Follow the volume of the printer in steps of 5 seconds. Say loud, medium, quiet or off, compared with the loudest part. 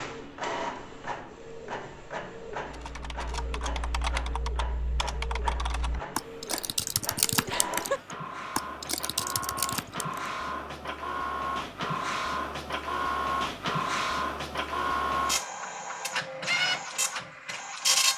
medium, medium, loud, loud.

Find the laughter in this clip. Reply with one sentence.
The laughter can be heard from 7.5 to 8.1 s.